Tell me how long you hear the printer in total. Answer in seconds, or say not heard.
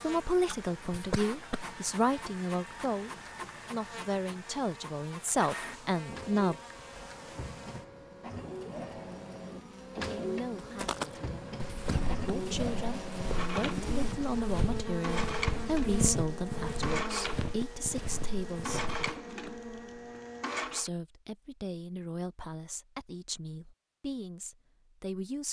21 s.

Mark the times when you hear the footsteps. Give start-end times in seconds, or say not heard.
10.8-19.1.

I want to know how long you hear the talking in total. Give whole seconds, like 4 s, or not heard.
20 s.